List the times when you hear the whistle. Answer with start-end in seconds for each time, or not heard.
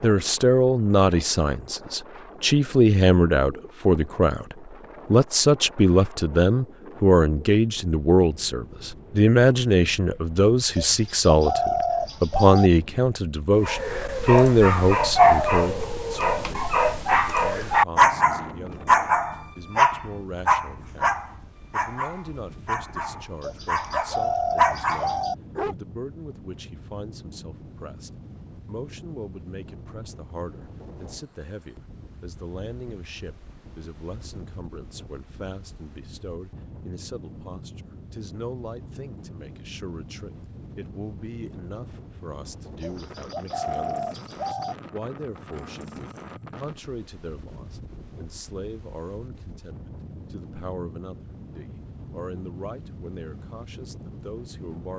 not heard.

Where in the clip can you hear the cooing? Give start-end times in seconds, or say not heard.
10.8-12.7, 23.4-25.4, 42.8-44.8.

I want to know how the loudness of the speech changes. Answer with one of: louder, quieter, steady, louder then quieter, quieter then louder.
quieter.